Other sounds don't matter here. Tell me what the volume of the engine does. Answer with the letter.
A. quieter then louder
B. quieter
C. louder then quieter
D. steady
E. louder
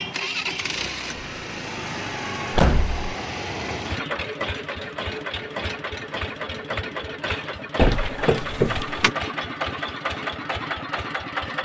D.